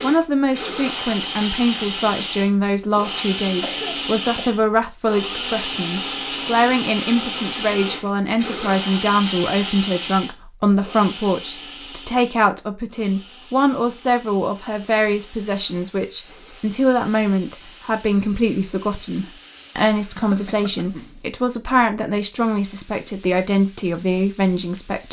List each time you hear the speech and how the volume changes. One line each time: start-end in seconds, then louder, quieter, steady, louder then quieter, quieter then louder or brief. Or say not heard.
0.0-25.0 steady.